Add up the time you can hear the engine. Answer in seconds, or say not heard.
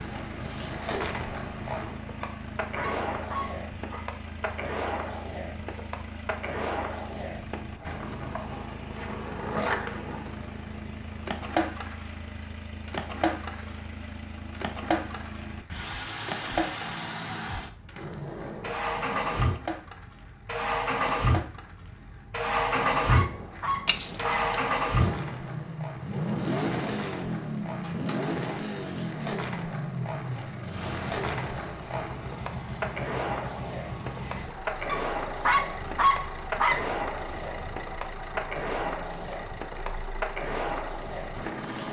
42 s.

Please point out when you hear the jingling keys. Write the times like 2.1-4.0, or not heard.
23.9-24.6.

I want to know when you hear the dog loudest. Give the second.
36 s.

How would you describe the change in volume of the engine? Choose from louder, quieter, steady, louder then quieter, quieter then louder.
louder then quieter.